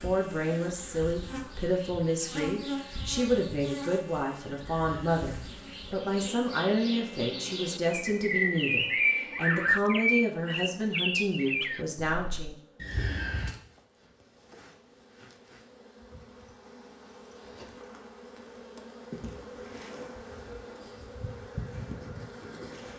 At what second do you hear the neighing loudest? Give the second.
13 s.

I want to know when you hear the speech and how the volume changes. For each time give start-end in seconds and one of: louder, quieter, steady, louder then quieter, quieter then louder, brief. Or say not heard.
0.0-12.6 steady.